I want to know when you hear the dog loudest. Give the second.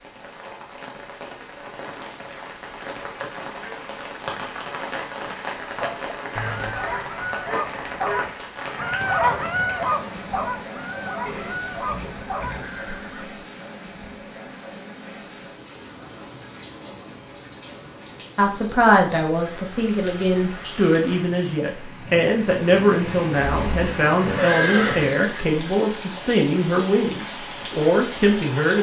9 s.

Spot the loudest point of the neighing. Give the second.
25 s.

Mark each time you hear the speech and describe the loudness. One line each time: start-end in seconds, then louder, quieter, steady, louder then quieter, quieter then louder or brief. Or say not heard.
18.4-28.7 steady.